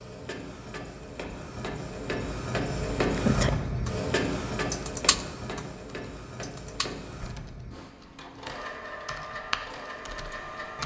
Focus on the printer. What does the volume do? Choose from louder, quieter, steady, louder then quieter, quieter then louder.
louder then quieter.